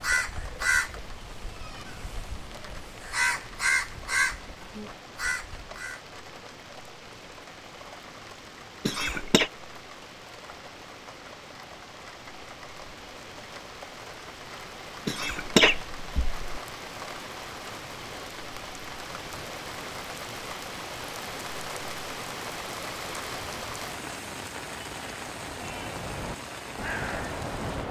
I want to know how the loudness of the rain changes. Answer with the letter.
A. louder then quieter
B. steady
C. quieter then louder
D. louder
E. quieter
D.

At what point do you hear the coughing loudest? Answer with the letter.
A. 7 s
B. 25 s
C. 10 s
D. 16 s
D.